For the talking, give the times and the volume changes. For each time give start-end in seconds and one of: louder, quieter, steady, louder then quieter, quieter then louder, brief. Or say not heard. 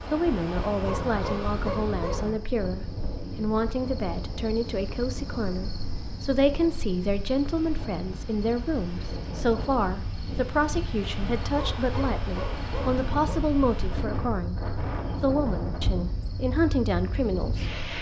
0.1-17.8 steady.